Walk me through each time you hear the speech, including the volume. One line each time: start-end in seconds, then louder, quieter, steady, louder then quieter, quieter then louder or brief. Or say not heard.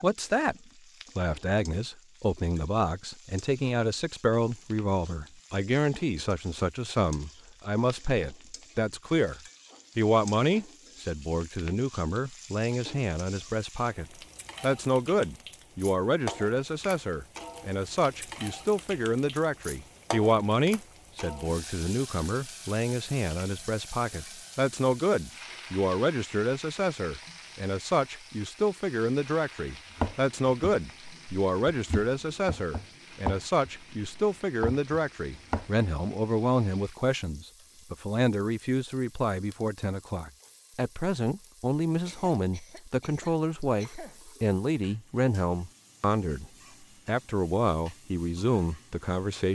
0.0-0.6 brief
1.1-49.5 steady.